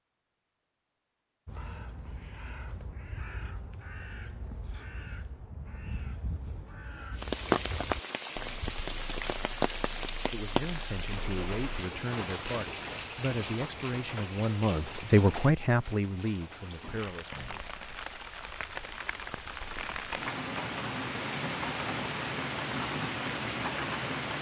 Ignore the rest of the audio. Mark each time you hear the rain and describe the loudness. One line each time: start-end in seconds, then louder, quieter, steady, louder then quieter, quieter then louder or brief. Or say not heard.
7.1-24.3 quieter then louder.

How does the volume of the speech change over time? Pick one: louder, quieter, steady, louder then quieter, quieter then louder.
louder then quieter.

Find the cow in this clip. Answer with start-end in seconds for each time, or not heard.
not heard.